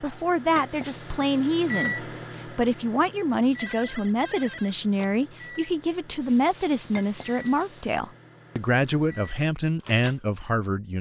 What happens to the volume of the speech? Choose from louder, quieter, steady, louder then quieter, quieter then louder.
steady.